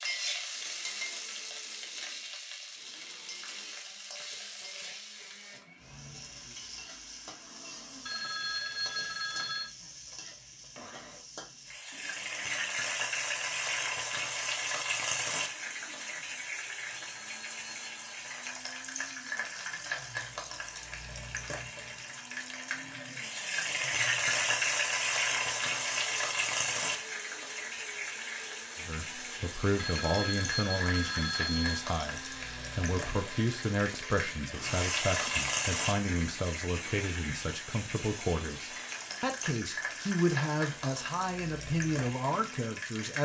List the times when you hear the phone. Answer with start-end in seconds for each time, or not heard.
8.1-9.7, 16.9-18.1, 29.8-31.8.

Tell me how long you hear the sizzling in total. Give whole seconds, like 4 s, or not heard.
43 s.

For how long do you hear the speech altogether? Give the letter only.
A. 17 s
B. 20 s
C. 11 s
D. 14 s
D.